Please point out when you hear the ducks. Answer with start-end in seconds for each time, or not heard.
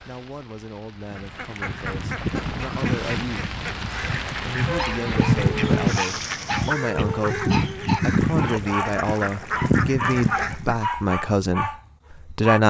1.1-10.8.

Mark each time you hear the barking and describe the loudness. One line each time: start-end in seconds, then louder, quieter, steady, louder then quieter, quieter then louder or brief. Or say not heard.
4.7-12.6 steady.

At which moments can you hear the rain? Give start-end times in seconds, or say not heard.
0.0-6.8.